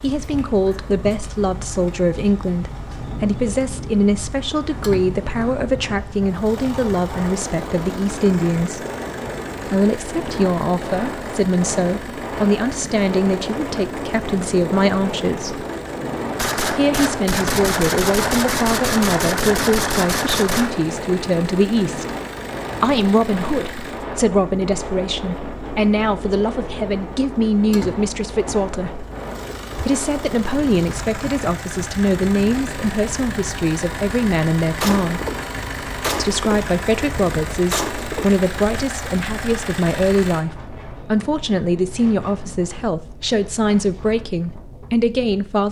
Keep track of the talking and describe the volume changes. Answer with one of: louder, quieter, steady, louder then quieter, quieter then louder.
steady.